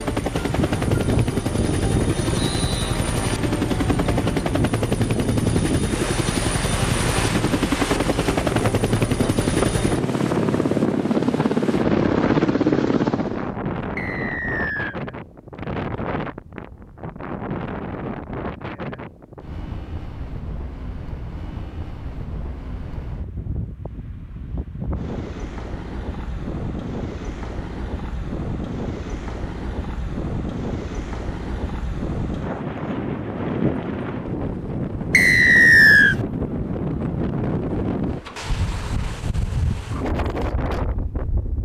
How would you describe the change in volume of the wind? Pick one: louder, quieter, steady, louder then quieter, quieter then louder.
quieter then louder.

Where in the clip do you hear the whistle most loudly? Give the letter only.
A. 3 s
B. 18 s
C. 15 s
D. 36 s
D.